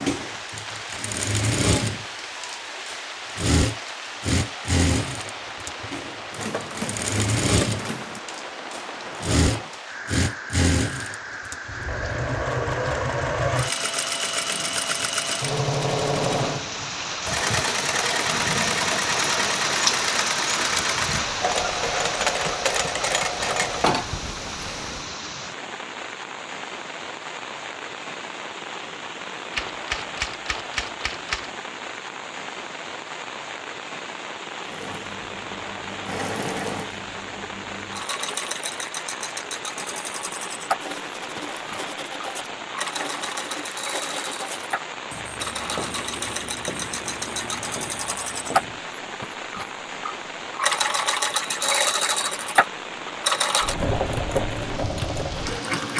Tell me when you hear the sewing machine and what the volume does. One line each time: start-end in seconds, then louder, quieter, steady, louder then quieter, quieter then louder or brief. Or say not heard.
0.0-25.3 steady
34.6-55.9 louder.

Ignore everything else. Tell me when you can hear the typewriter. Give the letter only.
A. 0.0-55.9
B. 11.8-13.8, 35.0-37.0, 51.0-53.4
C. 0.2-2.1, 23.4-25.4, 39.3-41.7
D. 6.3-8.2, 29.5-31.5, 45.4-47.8
D.